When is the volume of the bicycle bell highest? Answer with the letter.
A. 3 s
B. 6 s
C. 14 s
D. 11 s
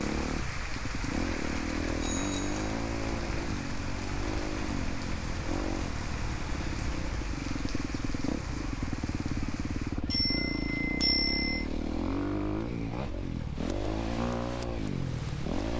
D.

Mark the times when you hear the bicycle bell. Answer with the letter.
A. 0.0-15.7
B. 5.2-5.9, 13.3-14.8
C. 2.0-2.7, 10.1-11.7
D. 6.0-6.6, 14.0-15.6
C.